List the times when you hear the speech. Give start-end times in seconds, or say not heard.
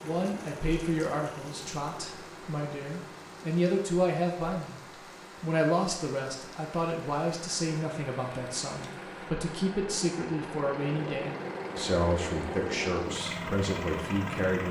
0.0-4.8, 5.4-14.6.